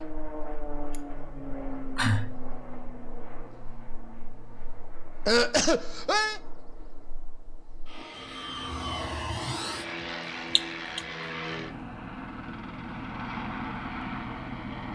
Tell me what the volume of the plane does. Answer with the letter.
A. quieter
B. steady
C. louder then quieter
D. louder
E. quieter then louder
E.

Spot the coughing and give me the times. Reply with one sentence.
The coughing can be heard from 0.9 to 2.4 s, from 5.2 to 6.4 s and from 10.6 to 11.0 s.